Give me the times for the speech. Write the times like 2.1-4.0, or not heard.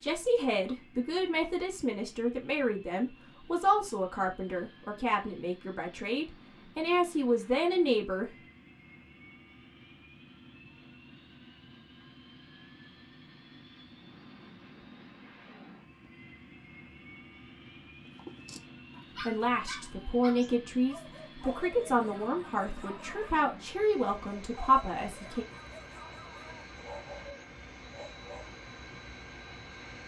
0.0-8.3, 19.2-25.4.